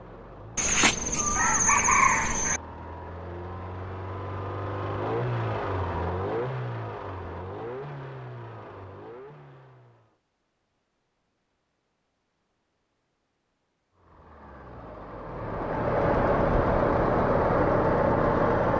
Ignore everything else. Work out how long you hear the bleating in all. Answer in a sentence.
The bleating can't be heard in this clip.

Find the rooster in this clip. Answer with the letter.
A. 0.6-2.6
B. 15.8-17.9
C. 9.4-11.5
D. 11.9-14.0
A.